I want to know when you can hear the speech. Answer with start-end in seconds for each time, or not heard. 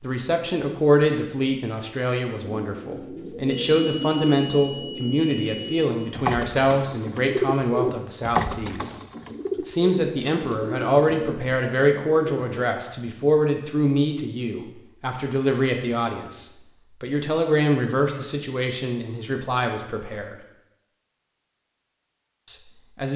0.0-8.9, 9.6-20.4, 22.4-23.1.